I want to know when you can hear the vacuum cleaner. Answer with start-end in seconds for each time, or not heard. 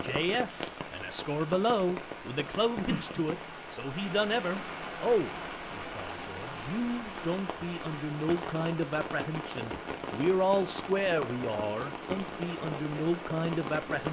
not heard.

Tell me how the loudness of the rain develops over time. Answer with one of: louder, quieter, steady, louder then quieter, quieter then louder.
steady.